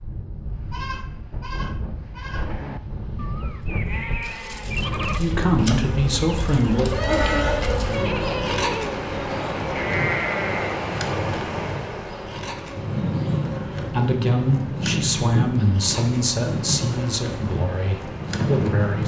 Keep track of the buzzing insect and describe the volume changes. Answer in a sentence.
The loudness of the buzzing insect goes up, then down.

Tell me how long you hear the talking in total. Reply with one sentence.
The talking can be heard for 7 seconds in total.